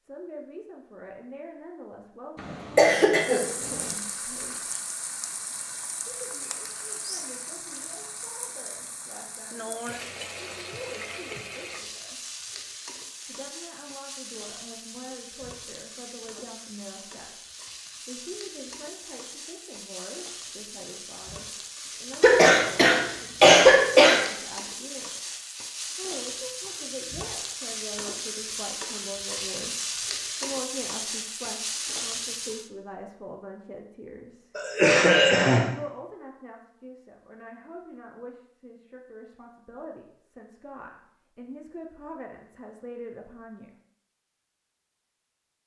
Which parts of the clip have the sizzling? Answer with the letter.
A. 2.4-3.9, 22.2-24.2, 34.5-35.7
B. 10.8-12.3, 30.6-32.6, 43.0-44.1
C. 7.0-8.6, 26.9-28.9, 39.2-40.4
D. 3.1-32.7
D.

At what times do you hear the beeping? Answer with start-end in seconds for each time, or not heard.
not heard.